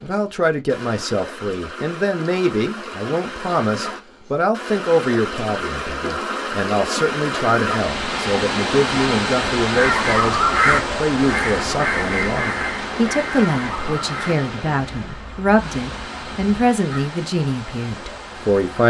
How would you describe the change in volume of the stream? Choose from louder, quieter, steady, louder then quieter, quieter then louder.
louder then quieter.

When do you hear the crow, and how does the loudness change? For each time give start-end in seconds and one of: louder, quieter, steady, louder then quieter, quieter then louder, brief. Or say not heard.
9.7-17.1 quieter.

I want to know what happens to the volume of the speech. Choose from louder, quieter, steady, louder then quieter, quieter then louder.
steady.